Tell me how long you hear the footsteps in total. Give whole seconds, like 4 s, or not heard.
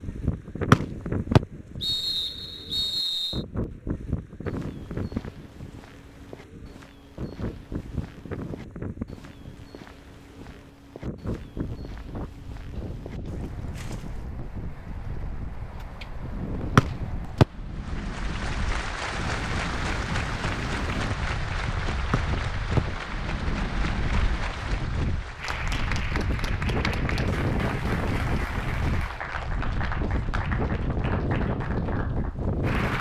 10 s.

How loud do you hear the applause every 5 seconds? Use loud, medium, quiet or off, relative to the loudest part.
off, off, off, loud, loud, loud, loud.